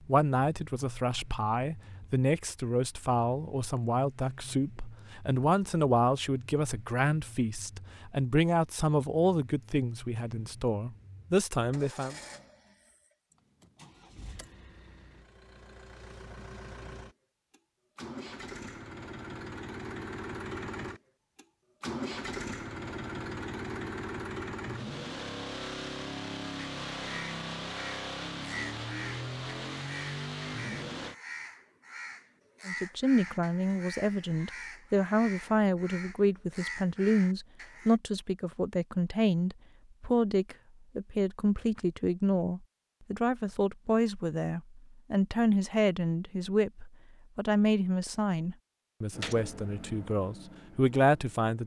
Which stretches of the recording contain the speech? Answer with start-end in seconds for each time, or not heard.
0.1-12.2, 32.6-51.6.